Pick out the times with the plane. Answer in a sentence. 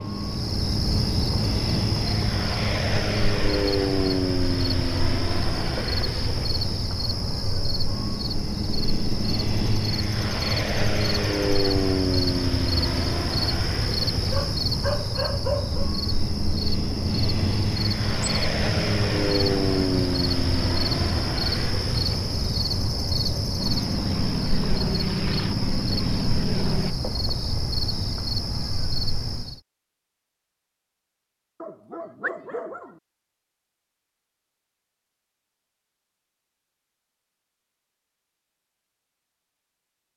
You can hear the plane from 0.0 to 26.9 s.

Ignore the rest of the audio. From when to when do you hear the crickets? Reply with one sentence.
The crickets can be heard from 0.0 to 29.6 s.